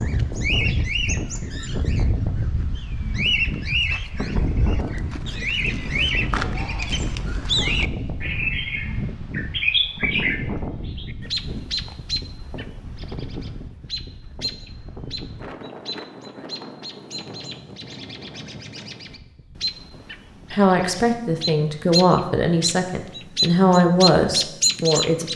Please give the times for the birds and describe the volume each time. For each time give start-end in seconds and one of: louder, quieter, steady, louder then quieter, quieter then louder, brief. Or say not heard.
0.0-25.3 quieter then louder.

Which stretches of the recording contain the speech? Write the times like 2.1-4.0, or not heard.
20.5-25.3.